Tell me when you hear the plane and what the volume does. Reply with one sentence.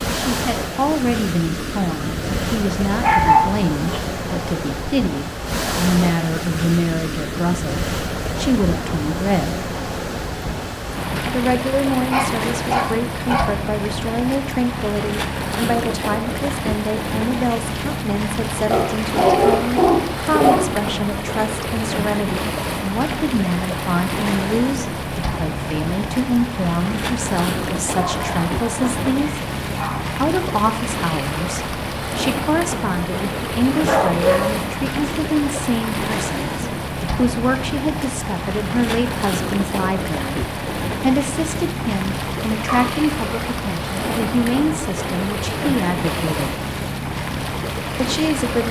The plane can't be heard in this clip.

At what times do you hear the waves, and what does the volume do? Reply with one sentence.
The waves can be heard from 0.0 to 48.6 s, at a steady volume.